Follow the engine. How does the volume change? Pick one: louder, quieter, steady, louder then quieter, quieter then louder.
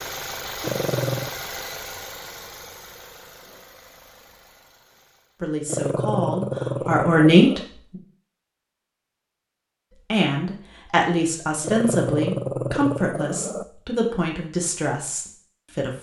quieter.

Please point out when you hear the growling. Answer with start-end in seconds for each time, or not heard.
0.6-1.4, 5.7-7.7, 11.6-13.7.